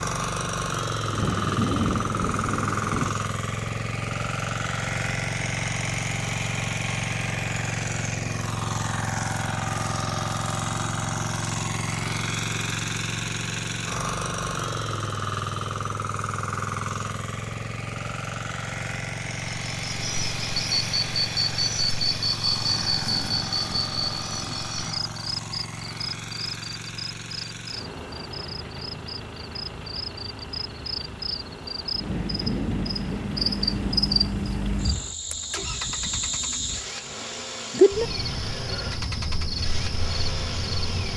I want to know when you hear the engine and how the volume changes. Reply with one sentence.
The engine can be heard from 0.0 to 41.1 s, getting quieter.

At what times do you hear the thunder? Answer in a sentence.
The thunder can be heard from 1.1 to 3.1 s, from 22.6 to 24.6 s and from 32.0 to 34.0 s.